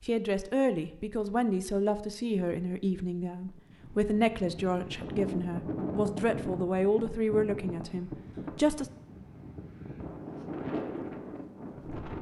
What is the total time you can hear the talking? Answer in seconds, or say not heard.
9 s.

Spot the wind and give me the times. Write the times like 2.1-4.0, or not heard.
3.5-12.1.